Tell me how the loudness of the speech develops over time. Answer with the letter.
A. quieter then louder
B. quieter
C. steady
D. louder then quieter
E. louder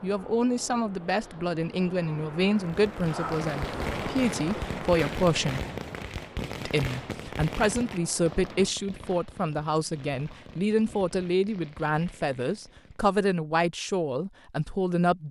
C.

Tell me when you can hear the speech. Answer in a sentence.
You can hear the speech from 0.0 to 5.6 s and from 6.6 to 15.2 s.